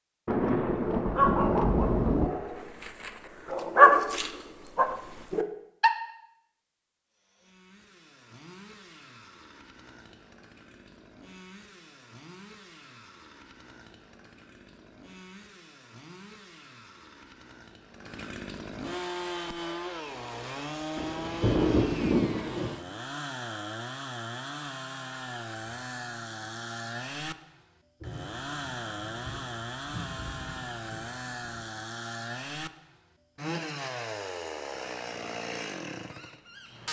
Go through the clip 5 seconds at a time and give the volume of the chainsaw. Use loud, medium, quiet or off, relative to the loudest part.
off, quiet, quiet, loud, loud, loud, loud, loud.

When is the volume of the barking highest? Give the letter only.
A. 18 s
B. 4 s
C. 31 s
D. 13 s
B.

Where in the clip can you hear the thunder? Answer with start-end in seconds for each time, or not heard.
0.2-2.3, 20.9-22.8, 28.0-31.6.